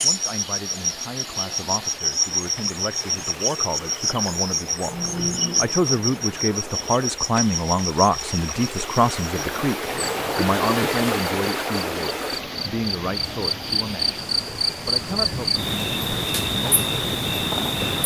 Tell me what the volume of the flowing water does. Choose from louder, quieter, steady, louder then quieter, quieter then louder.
louder then quieter.